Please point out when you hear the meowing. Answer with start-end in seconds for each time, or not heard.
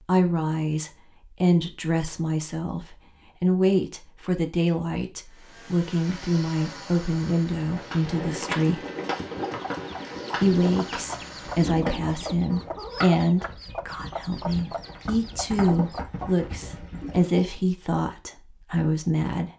not heard.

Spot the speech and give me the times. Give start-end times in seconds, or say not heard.
0.1-8.8, 10.4-19.5.